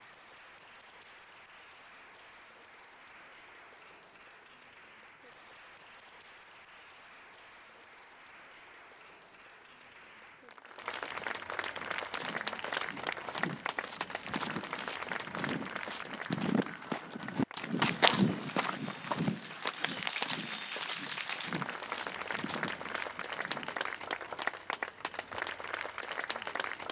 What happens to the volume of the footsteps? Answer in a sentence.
The loudness of the footsteps goes up, then down.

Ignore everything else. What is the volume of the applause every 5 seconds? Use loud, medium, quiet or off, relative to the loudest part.
quiet, quiet, loud, medium, loud, loud.